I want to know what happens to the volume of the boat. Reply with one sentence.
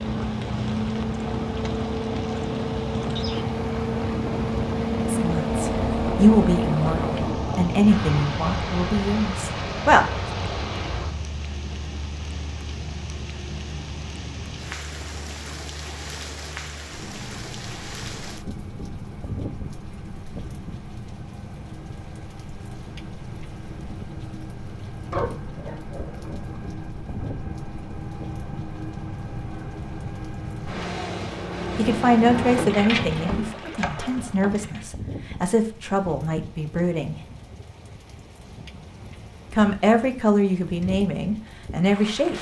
The loudness of the boat goes down, then up.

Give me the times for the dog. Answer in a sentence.
The dog can be heard from 25.1 to 26.6 s.